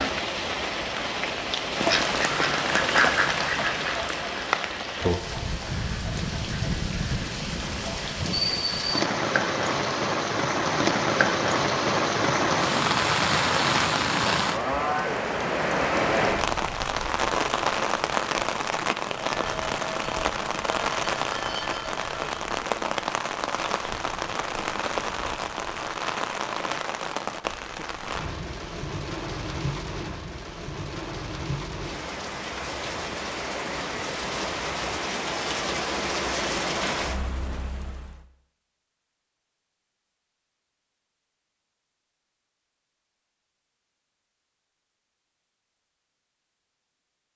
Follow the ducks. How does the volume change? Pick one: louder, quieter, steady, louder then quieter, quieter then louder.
quieter.